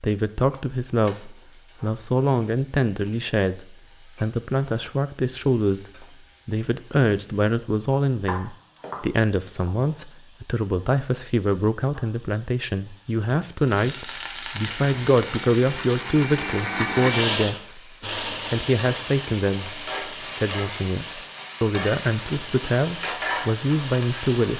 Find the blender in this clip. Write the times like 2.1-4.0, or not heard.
14.8-24.5.